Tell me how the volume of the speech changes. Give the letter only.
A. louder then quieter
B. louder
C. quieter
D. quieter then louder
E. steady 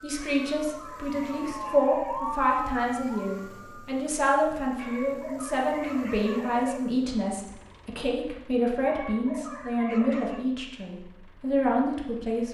E.